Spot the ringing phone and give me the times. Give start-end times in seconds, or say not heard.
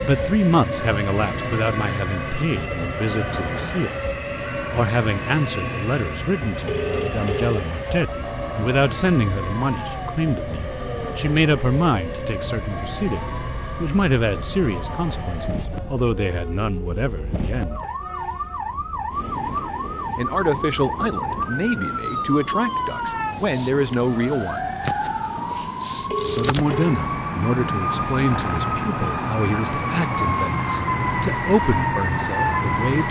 6.7-7.6, 26.1-26.9.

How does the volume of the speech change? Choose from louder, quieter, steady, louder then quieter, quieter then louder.
steady.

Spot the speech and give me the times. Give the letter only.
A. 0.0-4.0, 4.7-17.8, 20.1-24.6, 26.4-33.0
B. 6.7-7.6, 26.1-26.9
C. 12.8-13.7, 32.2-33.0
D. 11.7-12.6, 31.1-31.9
A.